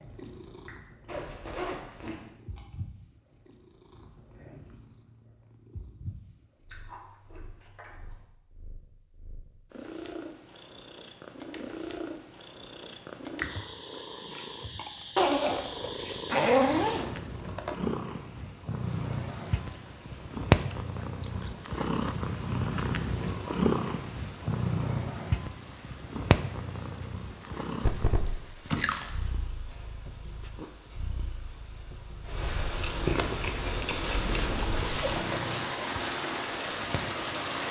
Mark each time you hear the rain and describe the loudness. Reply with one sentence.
You can hear the rain from 18.8 to 37.6 s, getting louder.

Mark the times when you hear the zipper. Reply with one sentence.
You can hear the zipper from 1.1 to 2.2 s, from 15.2 to 17.8 s and from 34.0 to 35.6 s.